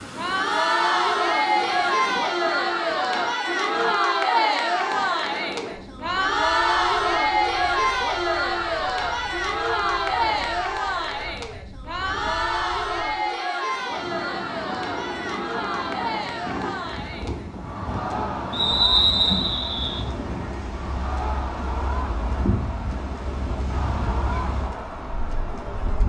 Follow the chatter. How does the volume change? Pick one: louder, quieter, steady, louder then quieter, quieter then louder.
quieter.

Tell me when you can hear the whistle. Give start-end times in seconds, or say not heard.
18.5-20.1.